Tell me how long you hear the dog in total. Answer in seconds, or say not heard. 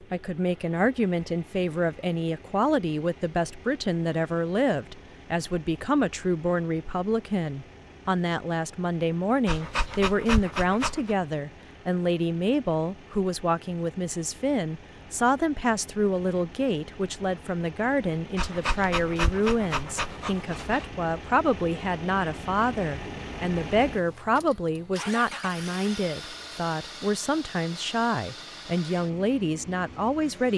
4 s.